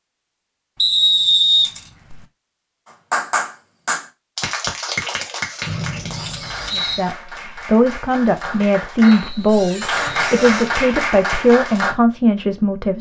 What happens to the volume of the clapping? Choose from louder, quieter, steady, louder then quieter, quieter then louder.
quieter then louder.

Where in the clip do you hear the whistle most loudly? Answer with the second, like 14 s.
1 s.